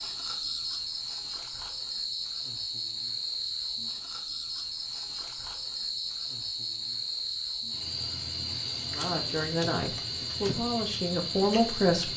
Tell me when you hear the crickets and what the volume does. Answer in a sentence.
The crickets can be heard from 0.0 to 12.1 s, at a steady volume.